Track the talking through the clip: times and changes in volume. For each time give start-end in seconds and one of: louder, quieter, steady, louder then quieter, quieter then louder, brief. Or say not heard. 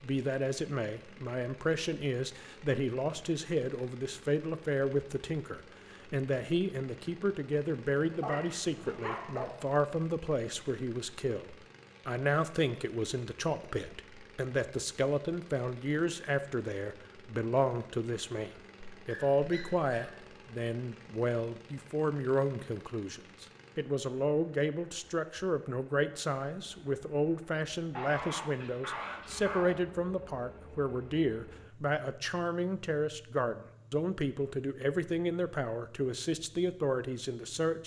0.0-37.8 steady.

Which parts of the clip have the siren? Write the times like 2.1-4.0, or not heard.
not heard.